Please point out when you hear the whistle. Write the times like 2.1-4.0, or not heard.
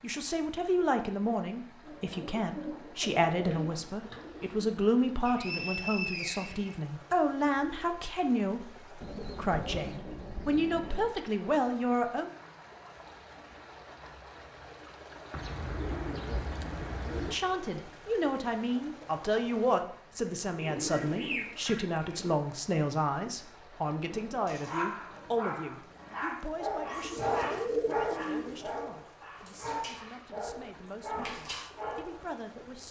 5.2-6.8.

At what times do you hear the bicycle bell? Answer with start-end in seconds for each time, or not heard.
not heard.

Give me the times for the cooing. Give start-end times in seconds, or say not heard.
1.9-4.6, 9.0-11.2, 15.3-17.4, 20.6-22.4, 27.0-28.9.